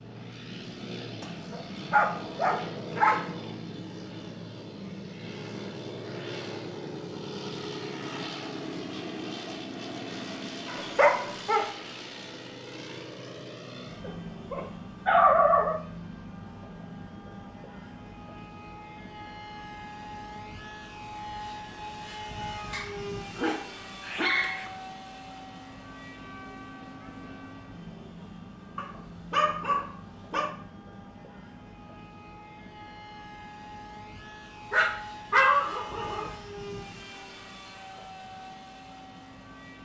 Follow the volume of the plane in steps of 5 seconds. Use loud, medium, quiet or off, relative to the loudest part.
loud, loud, loud, medium, loud, medium, medium, medium.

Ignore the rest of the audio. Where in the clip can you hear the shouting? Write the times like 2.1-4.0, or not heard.
not heard.